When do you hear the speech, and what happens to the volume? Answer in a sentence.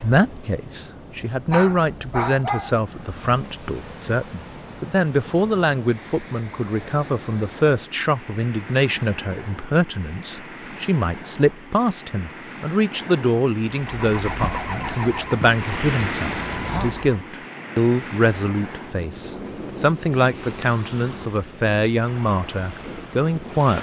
The speech can be heard from 0.0 to 23.7 s, at a steady volume.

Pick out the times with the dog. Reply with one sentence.
The dog can be heard from 1.5 to 2.8 s.